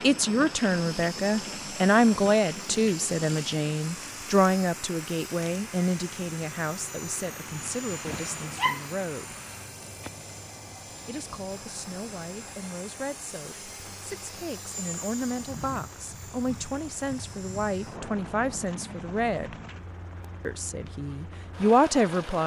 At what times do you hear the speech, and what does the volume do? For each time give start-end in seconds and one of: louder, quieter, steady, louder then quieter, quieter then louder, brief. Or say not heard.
0.0-9.3 quieter
11.1-19.6 louder
20.4-22.4 brief.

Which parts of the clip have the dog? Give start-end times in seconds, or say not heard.
8.1-8.8.